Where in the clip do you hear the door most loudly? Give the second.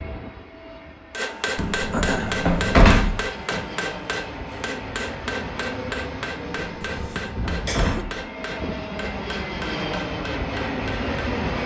3 s.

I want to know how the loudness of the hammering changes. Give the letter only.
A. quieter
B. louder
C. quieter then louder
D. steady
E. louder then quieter
A.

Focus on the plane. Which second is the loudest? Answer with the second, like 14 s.
11 s.